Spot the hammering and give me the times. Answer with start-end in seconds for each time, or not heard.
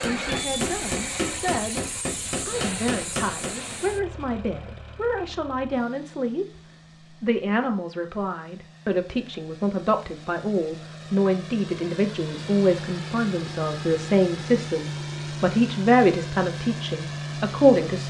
0.0-3.8.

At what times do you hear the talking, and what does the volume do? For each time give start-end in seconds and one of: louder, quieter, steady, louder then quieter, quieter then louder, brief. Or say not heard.
0.0-1.8 brief
2.5-18.0 louder.